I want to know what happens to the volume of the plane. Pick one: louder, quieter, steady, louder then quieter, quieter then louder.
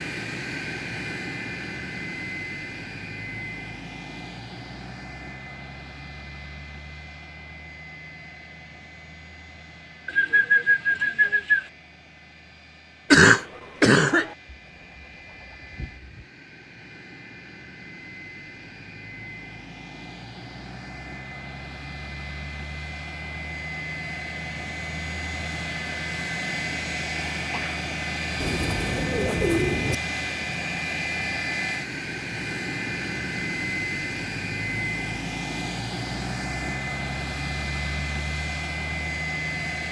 quieter then louder.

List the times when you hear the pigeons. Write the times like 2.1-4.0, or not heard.
10.1-11.7, 14.4-16.2, 28.4-29.9.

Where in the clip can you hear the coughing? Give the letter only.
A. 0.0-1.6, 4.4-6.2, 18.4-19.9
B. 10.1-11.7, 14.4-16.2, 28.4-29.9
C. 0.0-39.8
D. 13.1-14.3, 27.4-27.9
D.